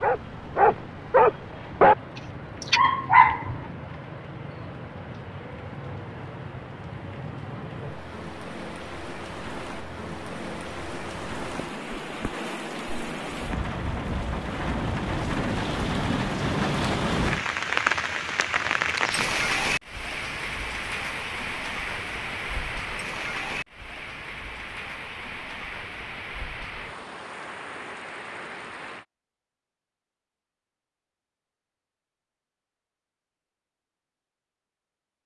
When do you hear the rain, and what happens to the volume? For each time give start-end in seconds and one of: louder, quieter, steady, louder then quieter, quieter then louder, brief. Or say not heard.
0.0-29.1 louder then quieter.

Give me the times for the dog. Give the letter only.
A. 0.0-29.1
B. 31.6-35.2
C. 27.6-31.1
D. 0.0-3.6
D.